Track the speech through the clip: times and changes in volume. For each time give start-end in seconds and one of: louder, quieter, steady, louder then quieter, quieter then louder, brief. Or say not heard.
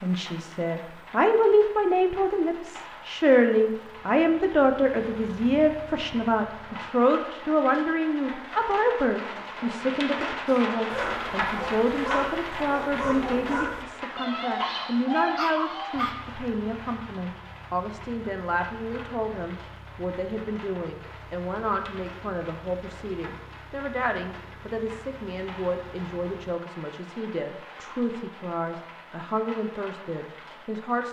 0.0-31.0 quieter.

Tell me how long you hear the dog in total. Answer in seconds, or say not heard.
6 s.